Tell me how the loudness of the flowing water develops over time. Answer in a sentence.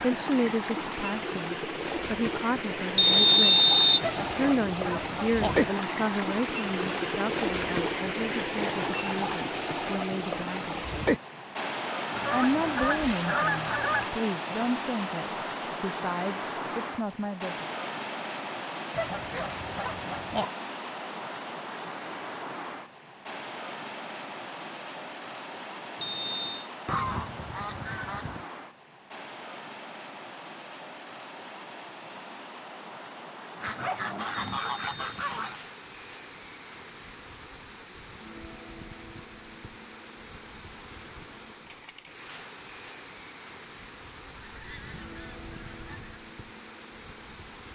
The loudness of the flowing water goes down.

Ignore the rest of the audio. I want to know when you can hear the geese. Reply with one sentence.
You can hear the geese from 4.0 to 5.5 s, from 12.1 to 14.1 s, from 18.9 to 20.4 s, from 26.9 to 28.4 s, from 33.6 to 35.6 s and from 44.2 to 46.2 s.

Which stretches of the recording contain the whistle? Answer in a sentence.
The whistle can be heard from 3.0 to 4.1 s, from 26.0 to 26.7 s and from 34.5 to 35.0 s.